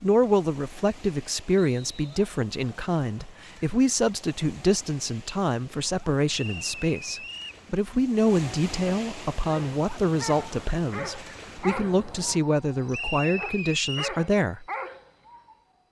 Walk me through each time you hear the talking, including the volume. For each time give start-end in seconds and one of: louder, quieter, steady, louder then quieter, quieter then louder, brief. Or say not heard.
0.0-14.7 steady.